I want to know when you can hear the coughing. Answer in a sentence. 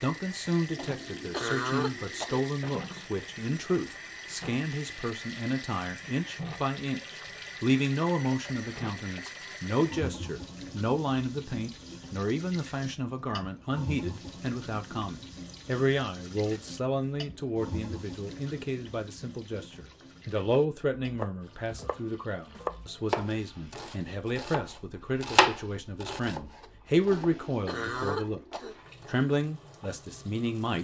You can hear the coughing from 0.8 to 2.5 s and from 27.1 to 28.8 s.